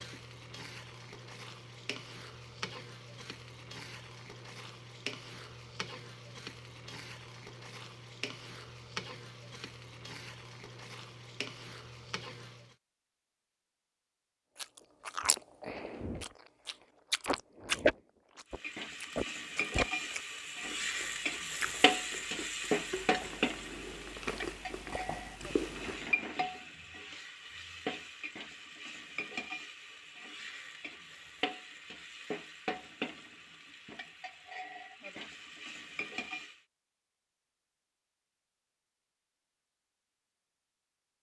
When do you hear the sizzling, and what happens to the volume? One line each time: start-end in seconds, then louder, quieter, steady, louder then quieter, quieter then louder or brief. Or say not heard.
0.0-12.8 steady
18.5-36.6 quieter.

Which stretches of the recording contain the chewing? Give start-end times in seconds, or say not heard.
14.6-26.1.